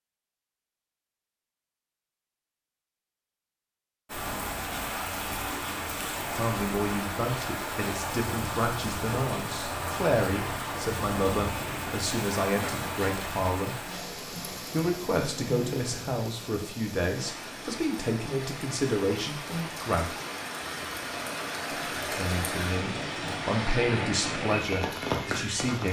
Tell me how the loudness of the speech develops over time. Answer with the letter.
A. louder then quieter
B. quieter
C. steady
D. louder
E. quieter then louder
C.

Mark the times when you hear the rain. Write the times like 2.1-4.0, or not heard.
4.0-25.8.